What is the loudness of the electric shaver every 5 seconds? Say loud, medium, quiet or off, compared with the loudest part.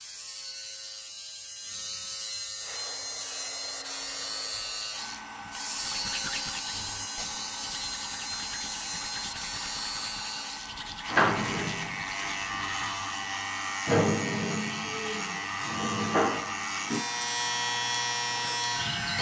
medium, medium, loud, loud.